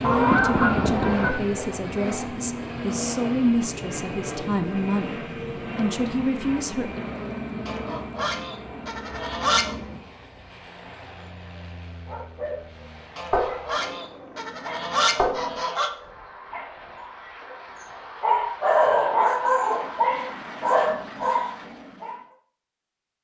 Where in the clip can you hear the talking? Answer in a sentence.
The talking can be heard from 0.0 to 7.0 s.